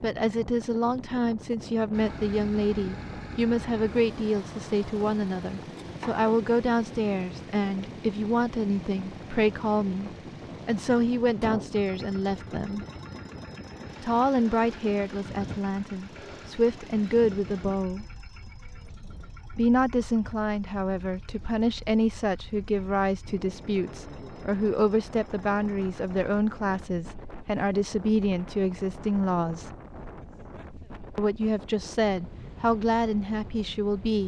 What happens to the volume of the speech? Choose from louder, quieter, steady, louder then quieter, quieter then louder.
steady.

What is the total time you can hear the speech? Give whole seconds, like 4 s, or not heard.
30 s.